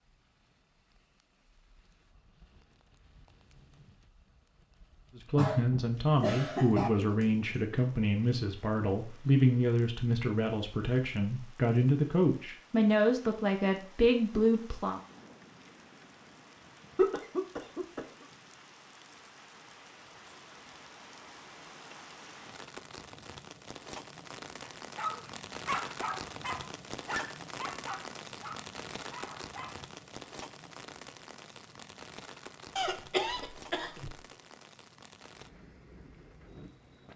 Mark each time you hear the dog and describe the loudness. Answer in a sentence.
You can hear the dog from 24.6 to 29.8 s, getting quieter.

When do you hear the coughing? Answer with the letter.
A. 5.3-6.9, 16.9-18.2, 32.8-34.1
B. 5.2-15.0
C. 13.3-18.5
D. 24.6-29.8
A.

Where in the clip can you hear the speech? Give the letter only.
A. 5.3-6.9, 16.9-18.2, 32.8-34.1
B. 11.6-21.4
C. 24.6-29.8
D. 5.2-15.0
D.